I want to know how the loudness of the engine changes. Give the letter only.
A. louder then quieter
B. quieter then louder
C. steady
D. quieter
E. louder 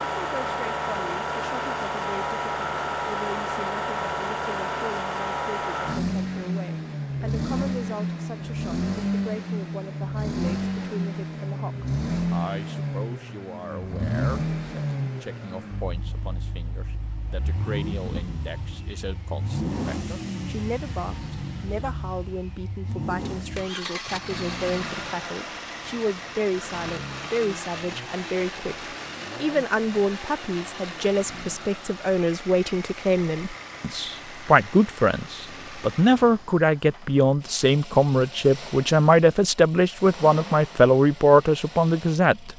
D.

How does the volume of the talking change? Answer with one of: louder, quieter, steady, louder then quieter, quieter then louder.
louder.